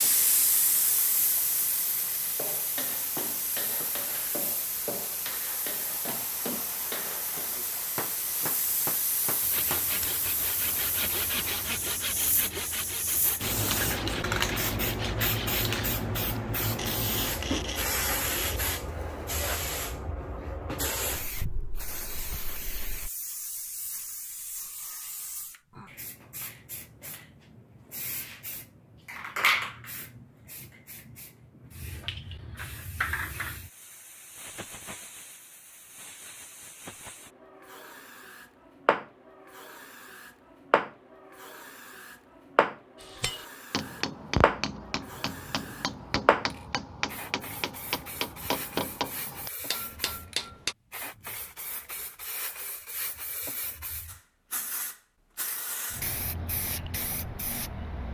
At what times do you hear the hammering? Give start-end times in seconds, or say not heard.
2.4-10.1, 43.0-50.8.